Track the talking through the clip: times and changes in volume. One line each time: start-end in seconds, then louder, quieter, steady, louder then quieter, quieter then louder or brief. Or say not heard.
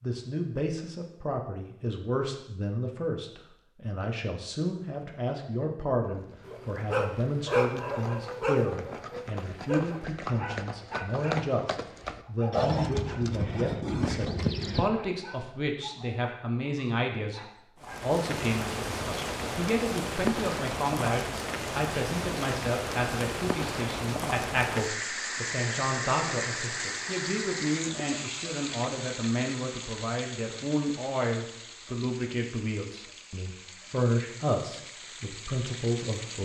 0.0-17.4 steady
18.0-36.3 steady.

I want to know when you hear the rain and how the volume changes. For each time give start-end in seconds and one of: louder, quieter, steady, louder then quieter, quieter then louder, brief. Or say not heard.
17.8-36.3 quieter.